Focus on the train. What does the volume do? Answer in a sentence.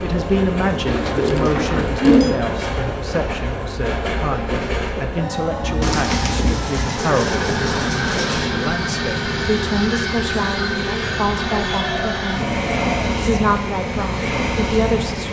The volume of the train stays about the same.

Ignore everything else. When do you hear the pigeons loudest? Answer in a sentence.
The loudest moment of the pigeons is at 2 seconds.